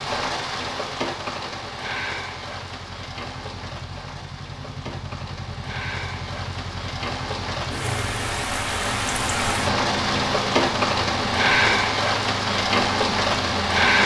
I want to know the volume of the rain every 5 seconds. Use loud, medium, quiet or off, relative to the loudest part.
medium, medium, loud.